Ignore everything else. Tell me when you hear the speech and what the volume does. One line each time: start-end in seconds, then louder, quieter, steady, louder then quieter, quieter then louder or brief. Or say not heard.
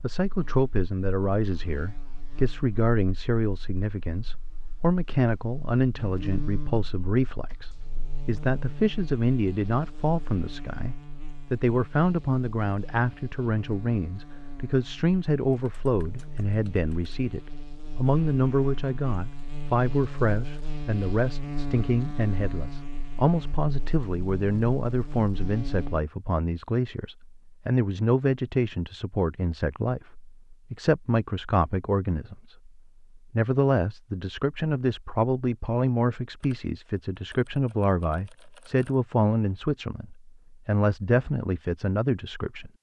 0.0-42.7 steady.